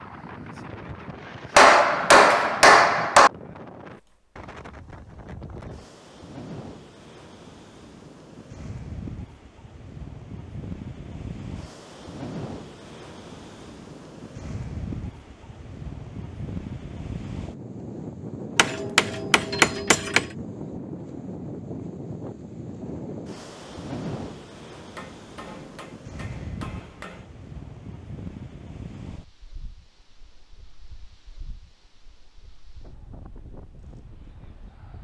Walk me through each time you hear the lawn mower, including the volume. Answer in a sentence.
The lawn mower can't be heard in this clip.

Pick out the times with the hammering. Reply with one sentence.
You can hear the hammering from 1.6 to 3.3 s, from 18.6 to 20.2 s and from 24.9 to 27.2 s.